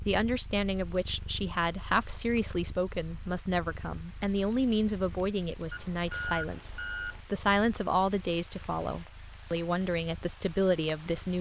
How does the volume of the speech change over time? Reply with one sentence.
The volume of the speech stays about the same.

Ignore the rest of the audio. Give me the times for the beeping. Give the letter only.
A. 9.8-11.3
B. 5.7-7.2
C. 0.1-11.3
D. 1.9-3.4
B.